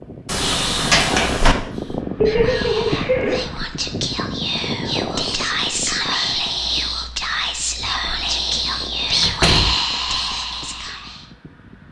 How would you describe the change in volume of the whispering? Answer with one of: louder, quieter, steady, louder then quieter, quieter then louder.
louder.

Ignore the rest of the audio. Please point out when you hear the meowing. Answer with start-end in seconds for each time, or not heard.
2.1-3.5.